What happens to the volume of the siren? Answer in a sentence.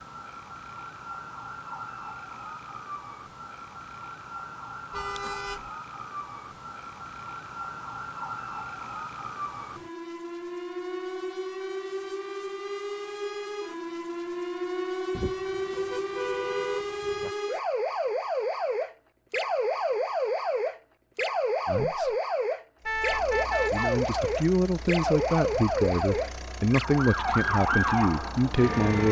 The loudness of the siren goes up.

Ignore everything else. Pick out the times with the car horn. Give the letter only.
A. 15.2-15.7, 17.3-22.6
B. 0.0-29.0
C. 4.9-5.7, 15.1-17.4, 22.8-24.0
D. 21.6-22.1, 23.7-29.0
C.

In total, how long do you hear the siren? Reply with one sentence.
You can hear the siren for 29 seconds altogether.